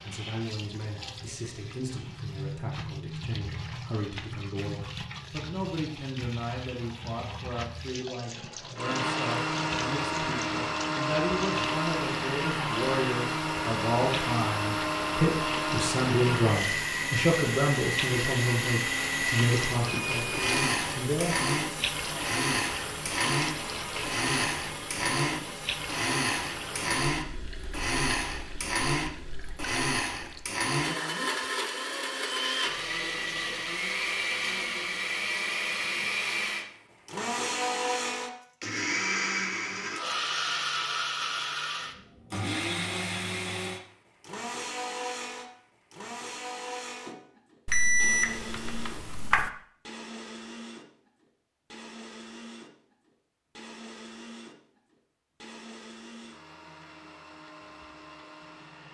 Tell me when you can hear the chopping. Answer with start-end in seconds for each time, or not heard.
not heard.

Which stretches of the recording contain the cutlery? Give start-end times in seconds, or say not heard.
not heard.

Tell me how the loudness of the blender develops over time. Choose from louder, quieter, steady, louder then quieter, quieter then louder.
quieter.